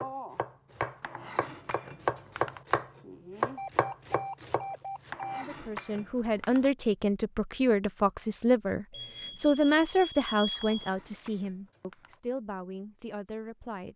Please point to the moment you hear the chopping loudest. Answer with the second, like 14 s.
3 s.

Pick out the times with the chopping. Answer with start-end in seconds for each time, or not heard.
0.0-5.2.